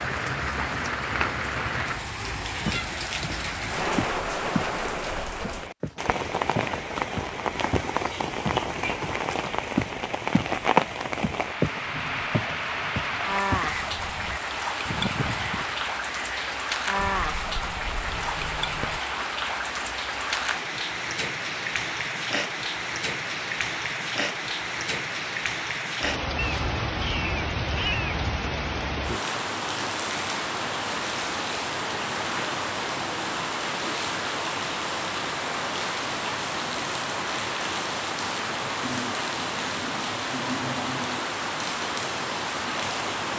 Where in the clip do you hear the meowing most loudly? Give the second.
28 s.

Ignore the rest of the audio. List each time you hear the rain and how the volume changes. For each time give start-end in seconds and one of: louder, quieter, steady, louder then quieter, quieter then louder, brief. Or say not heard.
0.0-43.3 steady.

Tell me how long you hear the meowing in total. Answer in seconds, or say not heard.
2 s.